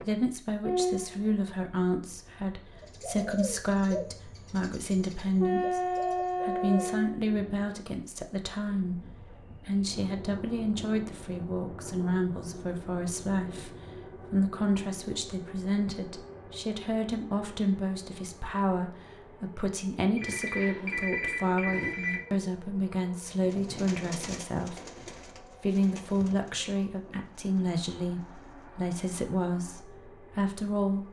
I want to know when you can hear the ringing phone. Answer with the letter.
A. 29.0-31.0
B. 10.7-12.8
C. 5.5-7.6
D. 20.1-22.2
D.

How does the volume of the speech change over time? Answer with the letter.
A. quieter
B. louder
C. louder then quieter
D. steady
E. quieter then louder
D.